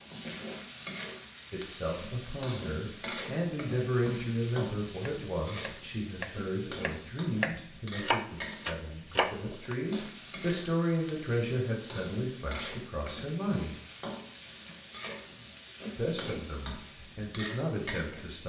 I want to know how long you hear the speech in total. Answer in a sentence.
The speech can be heard for 15 seconds in total.